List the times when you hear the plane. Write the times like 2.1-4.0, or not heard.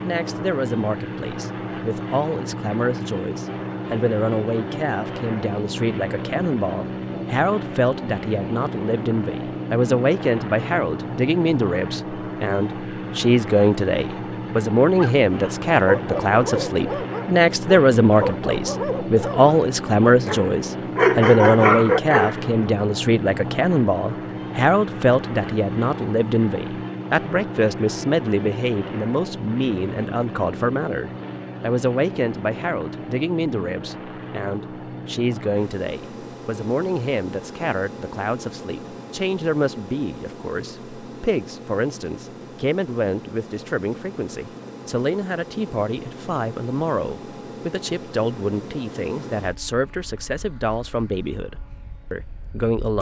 0.0-52.9.